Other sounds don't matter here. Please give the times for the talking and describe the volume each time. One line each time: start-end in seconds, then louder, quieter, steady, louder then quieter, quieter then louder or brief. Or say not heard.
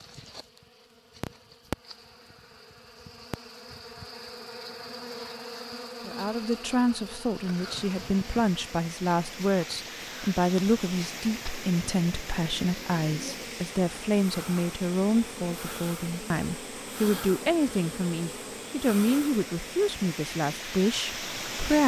6.0-21.8 steady.